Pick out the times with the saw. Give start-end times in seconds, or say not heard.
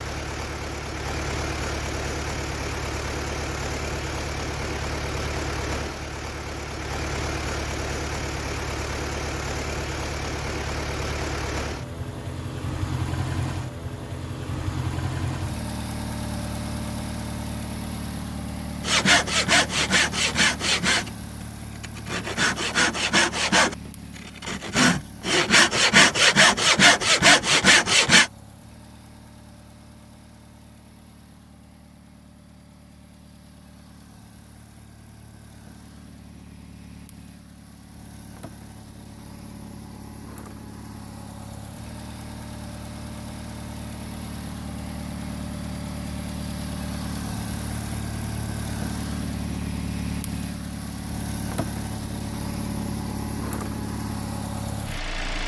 18.8-28.3.